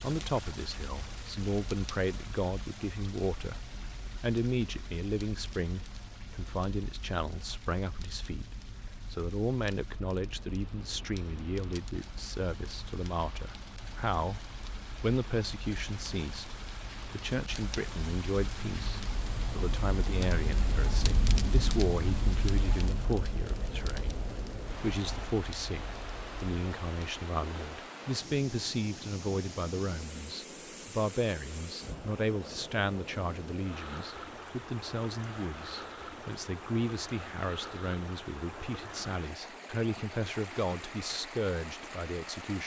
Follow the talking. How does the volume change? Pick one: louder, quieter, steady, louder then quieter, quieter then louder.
steady.